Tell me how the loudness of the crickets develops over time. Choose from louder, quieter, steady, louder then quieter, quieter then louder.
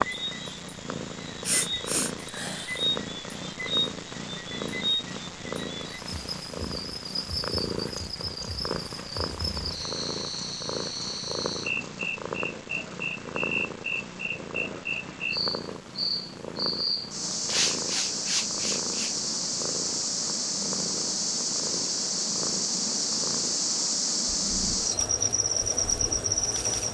louder.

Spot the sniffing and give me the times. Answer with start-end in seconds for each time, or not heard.
1.0-2.9, 17.4-19.1.